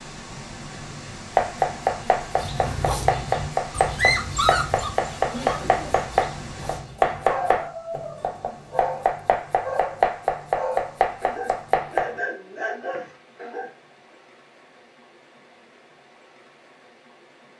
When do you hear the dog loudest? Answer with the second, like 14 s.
4 s.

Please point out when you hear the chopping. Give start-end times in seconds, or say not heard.
1.4-12.2.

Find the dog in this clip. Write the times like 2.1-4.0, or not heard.
2.2-13.7.